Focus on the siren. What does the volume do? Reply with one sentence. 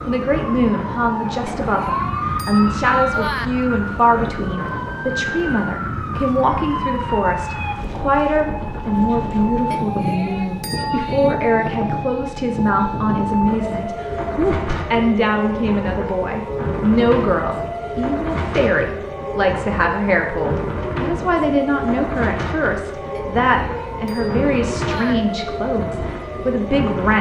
The loudness of the siren stays about the same.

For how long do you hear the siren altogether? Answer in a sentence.
You can hear the siren for 27 seconds altogether.